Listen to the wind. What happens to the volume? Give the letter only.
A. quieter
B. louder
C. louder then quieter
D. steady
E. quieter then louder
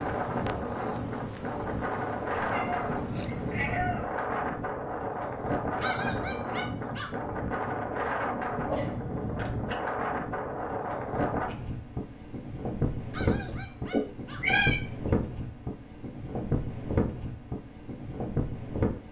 D.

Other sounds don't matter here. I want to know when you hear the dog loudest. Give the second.
6 s.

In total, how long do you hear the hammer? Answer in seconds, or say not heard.
not heard.